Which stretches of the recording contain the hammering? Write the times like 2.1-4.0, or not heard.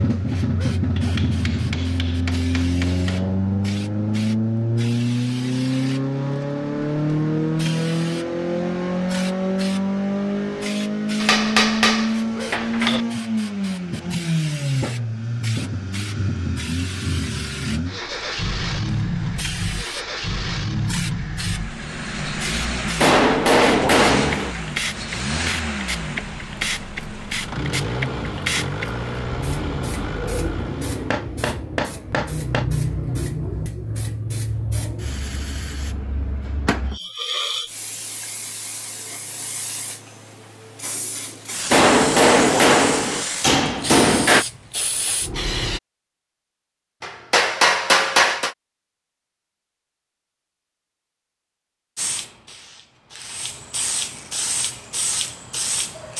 0.9-3.2, 11.2-13.1, 23.0-24.6, 31.1-32.7, 41.7-44.5, 47.0-48.5.